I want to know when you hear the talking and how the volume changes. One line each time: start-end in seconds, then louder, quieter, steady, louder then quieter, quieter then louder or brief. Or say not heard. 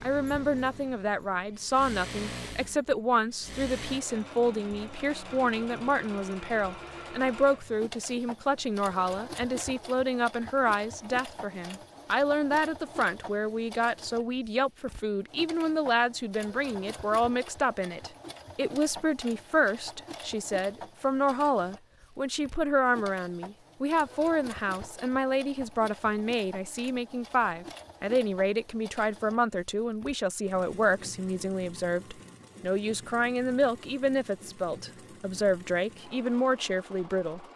0.0-37.5 steady.